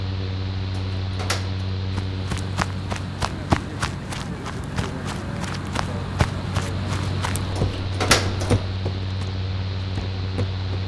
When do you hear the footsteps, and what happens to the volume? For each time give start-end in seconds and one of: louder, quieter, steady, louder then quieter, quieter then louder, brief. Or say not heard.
1.9-10.8 quieter.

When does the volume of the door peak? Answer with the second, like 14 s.
8 s.